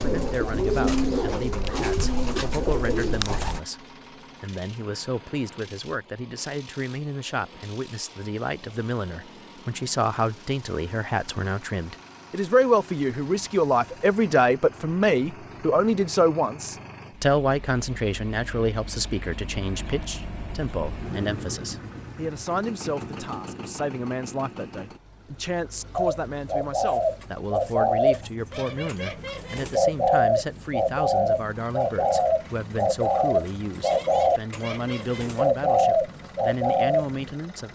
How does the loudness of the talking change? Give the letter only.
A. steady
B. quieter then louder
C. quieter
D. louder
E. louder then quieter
E.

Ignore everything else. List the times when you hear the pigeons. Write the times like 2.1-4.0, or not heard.
0.0-3.6, 25.9-37.3.